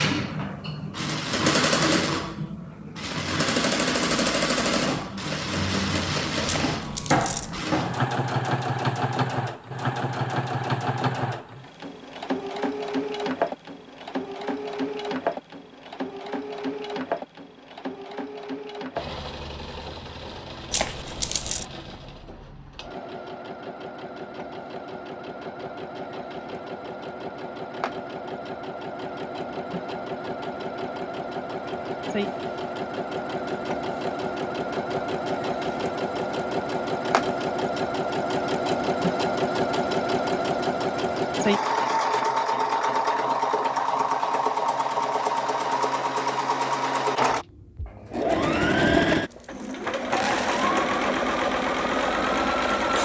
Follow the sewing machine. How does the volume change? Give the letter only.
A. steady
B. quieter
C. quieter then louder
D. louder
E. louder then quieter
C.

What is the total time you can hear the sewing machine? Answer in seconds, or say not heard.
53 s.